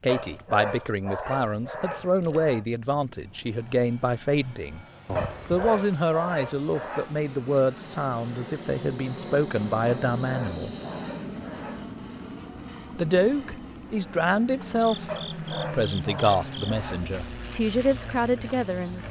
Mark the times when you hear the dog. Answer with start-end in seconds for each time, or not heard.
0.1-2.6, 5.2-7.2, 9.8-11.8, 15.1-17.1.